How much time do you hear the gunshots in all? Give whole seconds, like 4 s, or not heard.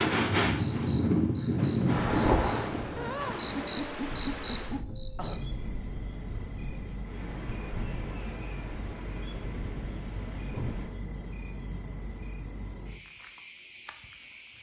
3 s.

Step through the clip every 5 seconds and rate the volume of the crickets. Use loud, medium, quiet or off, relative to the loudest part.
loud, medium, loud.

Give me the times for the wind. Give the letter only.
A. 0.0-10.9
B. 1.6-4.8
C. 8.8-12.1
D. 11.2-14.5
A.